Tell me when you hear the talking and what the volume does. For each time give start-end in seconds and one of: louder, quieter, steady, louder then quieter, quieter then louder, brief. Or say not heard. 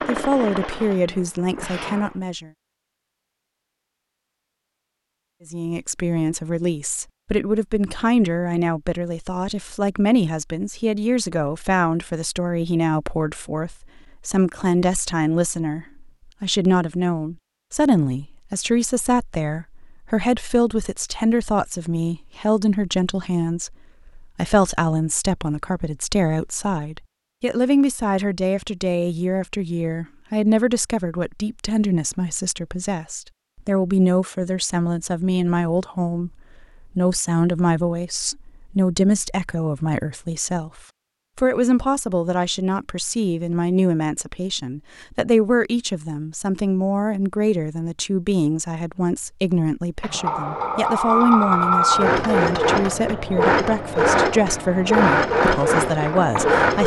0.1-2.5 brief
5.5-36.3 steady
37.0-56.8 steady.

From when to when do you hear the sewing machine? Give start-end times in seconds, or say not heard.
0.0-2.1, 50.0-56.8.